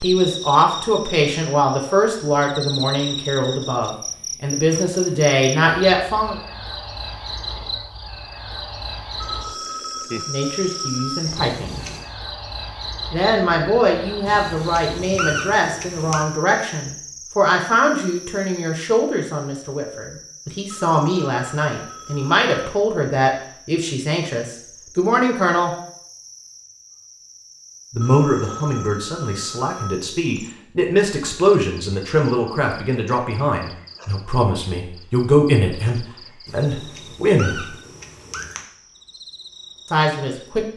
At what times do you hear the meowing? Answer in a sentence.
The meowing can be heard from 11.3 to 12.1 s, from 14.2 to 16.2 s and from 36.5 to 38.6 s.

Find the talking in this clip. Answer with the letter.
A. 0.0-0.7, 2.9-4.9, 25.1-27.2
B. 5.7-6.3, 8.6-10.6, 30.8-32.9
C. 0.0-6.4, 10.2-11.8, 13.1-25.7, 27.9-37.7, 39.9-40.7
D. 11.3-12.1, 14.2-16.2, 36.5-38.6
C.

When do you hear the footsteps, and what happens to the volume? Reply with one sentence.
The footsteps can't be heard in this clip.